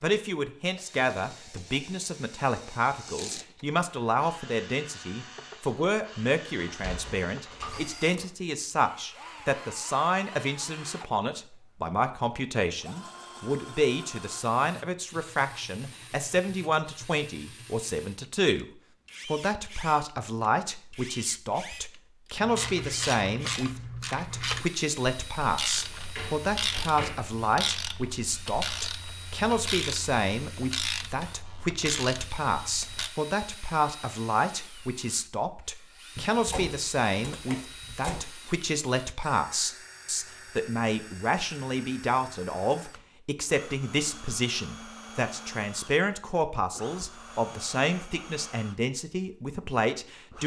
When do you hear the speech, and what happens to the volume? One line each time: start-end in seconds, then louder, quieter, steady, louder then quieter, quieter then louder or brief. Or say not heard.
0.0-18.6 steady
19.2-50.4 steady.